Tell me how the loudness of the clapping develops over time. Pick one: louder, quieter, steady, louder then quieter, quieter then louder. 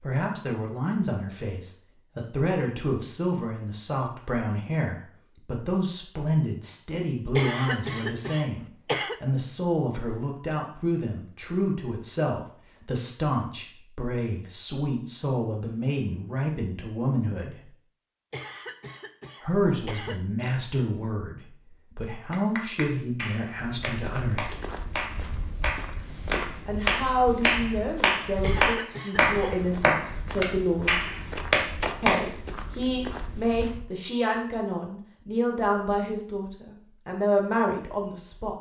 louder.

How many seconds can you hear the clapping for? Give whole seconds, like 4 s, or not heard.
10 s.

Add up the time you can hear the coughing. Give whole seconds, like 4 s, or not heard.
5 s.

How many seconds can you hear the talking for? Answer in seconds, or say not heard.
34 s.